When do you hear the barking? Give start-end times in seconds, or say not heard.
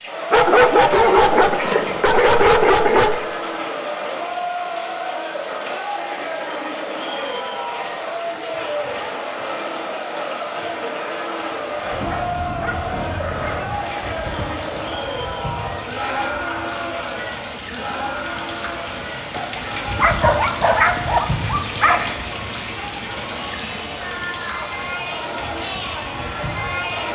0.3-3.2, 11.7-13.7, 19.3-22.1.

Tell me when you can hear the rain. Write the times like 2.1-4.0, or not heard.
0.0-27.1.